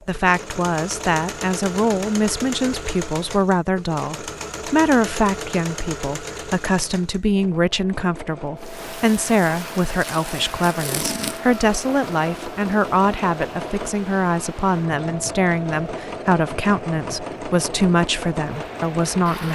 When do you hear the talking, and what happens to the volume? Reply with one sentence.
You can hear the talking from 0.1 to 19.5 s, at a steady volume.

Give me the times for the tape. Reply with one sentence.
You can hear the tape from 9.9 to 11.4 s.